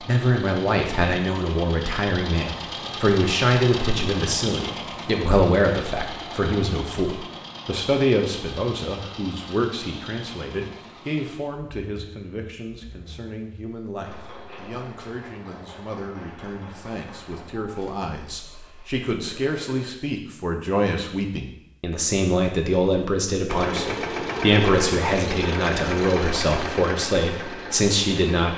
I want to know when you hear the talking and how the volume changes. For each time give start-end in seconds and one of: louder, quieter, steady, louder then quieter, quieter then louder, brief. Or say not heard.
0.0-28.5 quieter then louder.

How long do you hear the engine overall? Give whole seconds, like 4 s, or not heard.
25 s.